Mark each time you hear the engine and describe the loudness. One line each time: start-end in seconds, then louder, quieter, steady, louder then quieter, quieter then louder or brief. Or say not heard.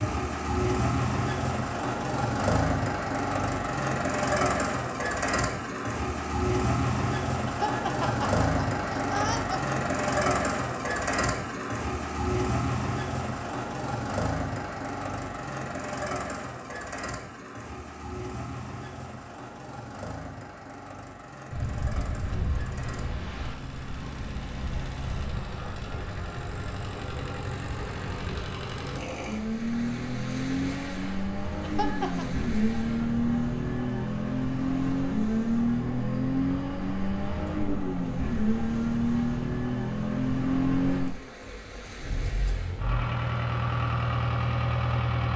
0.0-45.3 quieter then louder.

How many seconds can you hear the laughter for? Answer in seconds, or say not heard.
3 s.